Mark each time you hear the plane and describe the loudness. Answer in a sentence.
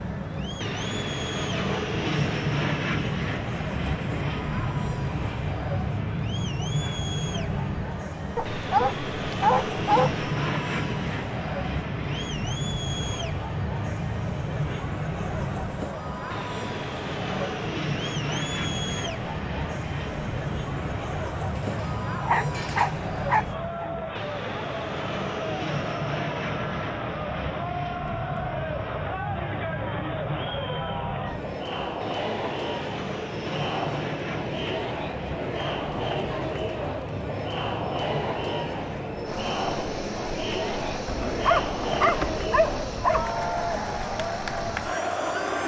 You can hear the plane from 0.0 to 45.6 s, getting quieter.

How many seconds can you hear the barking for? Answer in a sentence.
The barking can be heard for 6 seconds in total.